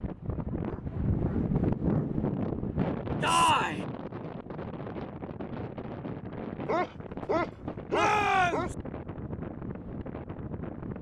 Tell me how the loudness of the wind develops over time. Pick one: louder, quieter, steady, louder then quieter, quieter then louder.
quieter.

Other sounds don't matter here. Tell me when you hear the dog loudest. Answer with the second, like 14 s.
7 s.